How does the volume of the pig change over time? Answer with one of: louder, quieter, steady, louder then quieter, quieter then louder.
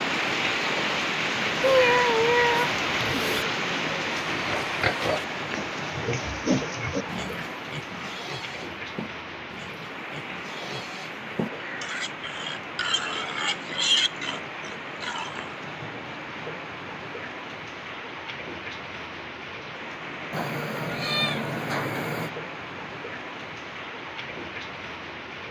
quieter then louder.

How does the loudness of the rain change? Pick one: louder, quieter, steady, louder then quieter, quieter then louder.
quieter.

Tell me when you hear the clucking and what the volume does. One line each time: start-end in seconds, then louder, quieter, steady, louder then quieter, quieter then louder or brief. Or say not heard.
not heard.